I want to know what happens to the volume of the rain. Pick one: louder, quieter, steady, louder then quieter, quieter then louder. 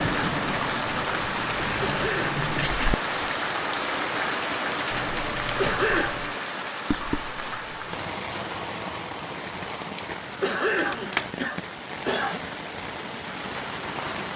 quieter.